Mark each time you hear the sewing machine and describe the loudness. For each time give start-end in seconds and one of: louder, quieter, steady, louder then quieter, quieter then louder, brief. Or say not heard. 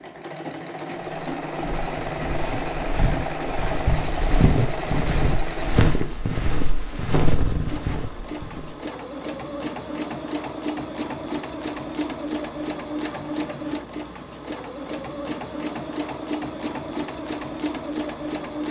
0.0-18.6 steady.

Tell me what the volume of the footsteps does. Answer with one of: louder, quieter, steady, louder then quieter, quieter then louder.
louder.